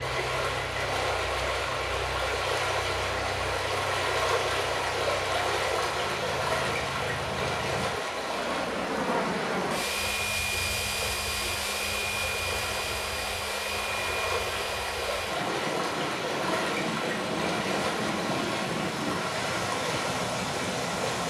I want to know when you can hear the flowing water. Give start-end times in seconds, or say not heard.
0.0-21.2.